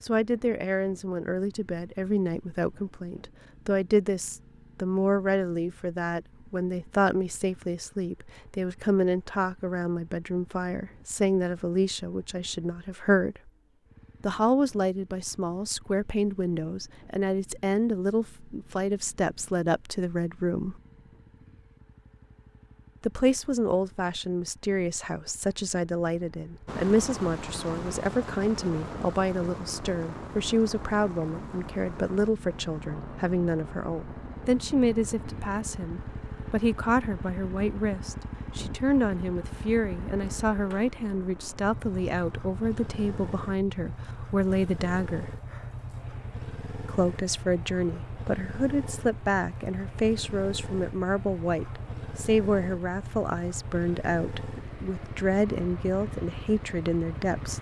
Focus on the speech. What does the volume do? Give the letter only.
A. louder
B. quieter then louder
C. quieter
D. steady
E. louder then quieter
D.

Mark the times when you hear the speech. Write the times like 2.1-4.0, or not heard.
0.0-13.4, 14.2-20.8, 23.0-45.3, 46.9-57.5.